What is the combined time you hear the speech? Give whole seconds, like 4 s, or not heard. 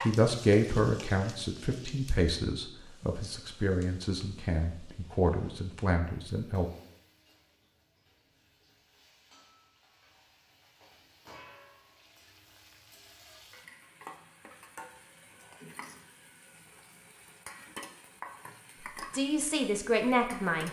8 s.